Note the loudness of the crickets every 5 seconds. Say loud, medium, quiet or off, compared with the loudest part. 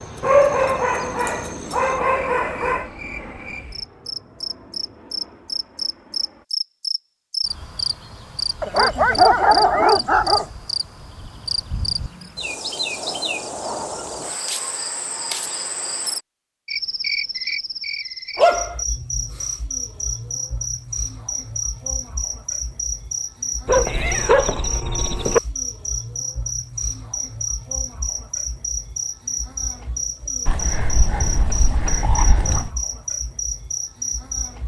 medium, loud, loud, loud, loud, loud, loud.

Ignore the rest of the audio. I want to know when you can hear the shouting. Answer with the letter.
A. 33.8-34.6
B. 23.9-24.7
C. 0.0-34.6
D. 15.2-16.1
B.